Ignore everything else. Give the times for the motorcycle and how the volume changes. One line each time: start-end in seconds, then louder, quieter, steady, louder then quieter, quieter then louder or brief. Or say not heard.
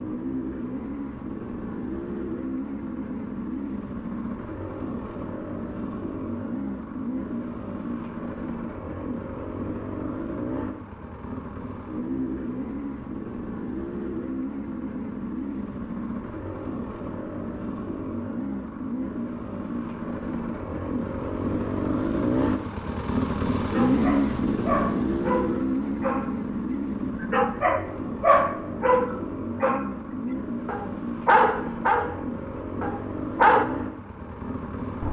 0.0-35.0 louder then quieter.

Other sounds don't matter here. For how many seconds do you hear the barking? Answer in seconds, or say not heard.
9 s.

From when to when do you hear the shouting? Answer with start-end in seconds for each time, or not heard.
not heard.